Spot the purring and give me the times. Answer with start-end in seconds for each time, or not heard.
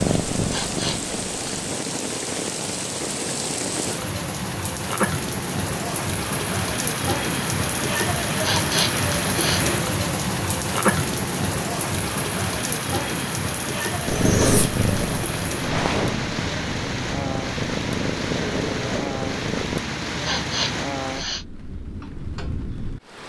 0.0-1.8, 14.1-19.9.